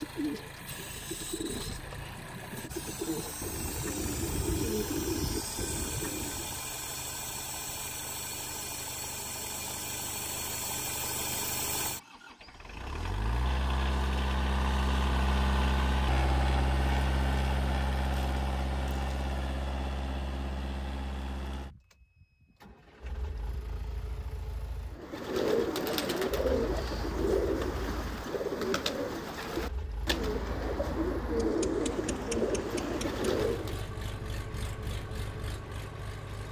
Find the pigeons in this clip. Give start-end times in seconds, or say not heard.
0.0-6.6, 24.9-33.9.